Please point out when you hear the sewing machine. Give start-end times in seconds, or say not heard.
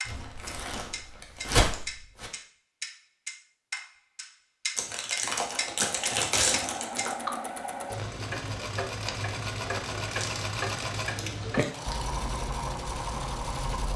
5.3-13.9.